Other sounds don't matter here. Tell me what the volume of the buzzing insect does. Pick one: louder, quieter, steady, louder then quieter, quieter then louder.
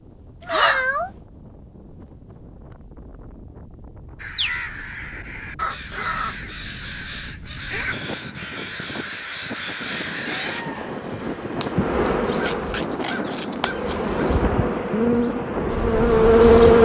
louder.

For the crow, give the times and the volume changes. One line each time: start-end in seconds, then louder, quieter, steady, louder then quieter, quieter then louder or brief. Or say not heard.
4.2-10.7 steady
12.2-14.2 brief.